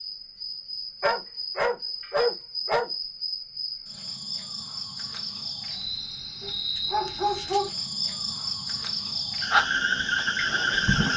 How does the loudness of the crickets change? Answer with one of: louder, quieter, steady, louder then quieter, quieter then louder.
louder.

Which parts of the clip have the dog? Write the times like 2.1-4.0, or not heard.
1.0-2.9, 6.4-7.7.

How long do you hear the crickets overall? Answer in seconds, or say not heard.
11 s.